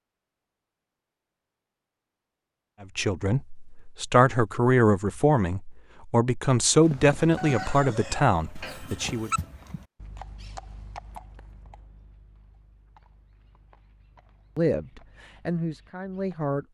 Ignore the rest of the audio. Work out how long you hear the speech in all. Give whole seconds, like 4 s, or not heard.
9 s.